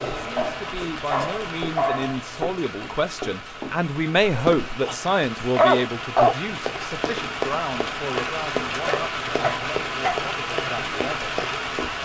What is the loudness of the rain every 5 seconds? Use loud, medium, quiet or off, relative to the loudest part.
medium, loud, loud.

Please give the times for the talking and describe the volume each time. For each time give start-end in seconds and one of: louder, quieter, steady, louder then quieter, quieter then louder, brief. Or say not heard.
0.1-11.3 louder then quieter.